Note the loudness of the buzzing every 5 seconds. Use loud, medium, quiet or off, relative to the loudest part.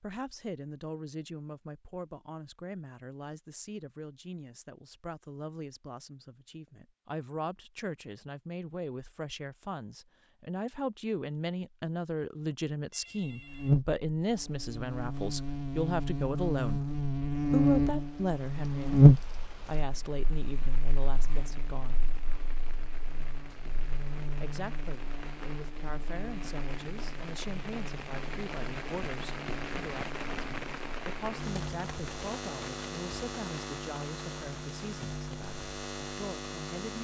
off, off, medium, loud, quiet, quiet, quiet, quiet.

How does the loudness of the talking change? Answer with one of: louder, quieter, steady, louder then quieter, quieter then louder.
louder then quieter.